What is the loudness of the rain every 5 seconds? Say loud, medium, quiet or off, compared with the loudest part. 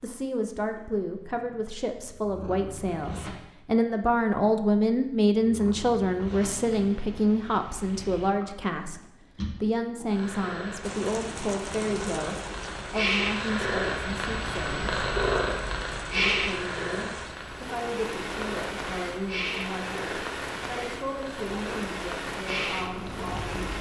off, off, loud, loud, loud.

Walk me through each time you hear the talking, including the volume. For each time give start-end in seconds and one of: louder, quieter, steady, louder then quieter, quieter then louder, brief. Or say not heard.
0.0-15.1 louder then quieter
16.1-23.6 steady.